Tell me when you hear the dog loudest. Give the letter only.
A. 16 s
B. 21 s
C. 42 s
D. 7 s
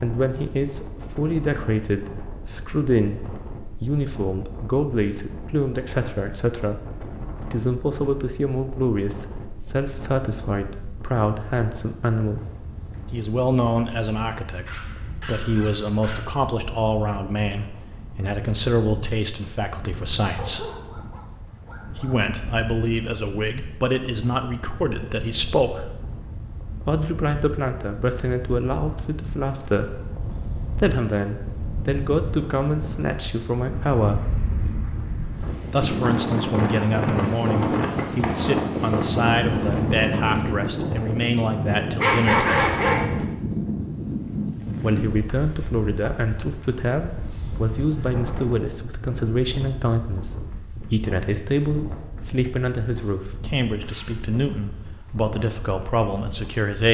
C.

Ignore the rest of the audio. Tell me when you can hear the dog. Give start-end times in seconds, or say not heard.
14.7-16.3, 20.4-22.1, 42.0-43.0.